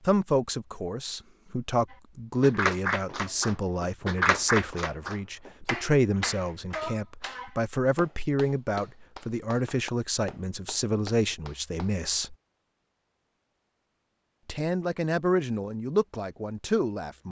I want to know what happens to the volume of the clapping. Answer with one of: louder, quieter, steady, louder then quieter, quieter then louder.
quieter.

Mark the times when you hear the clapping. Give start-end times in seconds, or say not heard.
1.9-11.9.